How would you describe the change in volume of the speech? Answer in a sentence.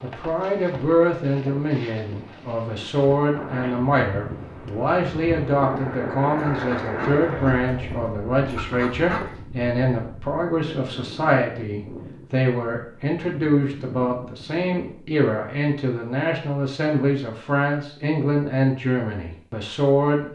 The volume of the speech stays about the same.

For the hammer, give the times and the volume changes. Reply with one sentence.
The hammer can't be heard in this clip.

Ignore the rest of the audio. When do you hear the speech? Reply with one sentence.
The speech can be heard from 0.0 to 20.3 s.